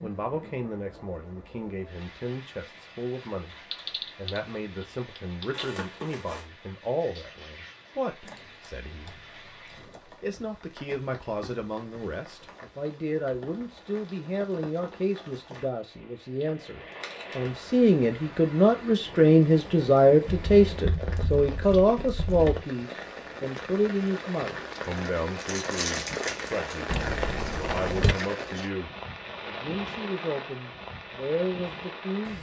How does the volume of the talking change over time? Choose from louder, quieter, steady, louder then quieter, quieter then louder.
louder then quieter.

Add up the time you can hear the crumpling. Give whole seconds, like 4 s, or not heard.
3 s.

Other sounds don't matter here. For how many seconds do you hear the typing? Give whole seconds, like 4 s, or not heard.
7 s.